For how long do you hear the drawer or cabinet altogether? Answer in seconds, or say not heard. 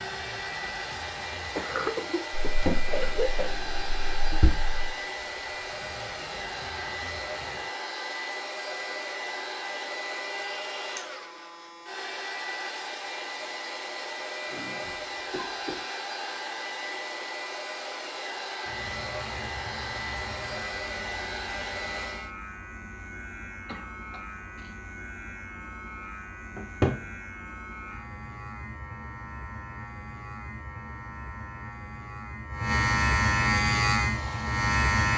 3 s.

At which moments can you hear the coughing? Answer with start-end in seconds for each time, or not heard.
1.6-3.5, 14.4-15.8, 23.6-24.8.